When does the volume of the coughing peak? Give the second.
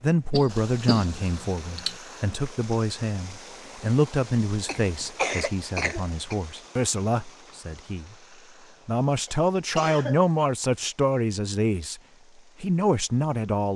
5 s.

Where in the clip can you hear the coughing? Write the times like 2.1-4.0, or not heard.
0.3-1.9, 4.7-6.3, 9.2-10.2.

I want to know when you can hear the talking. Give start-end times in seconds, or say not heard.
0.0-8.2, 8.8-12.0, 12.6-13.7.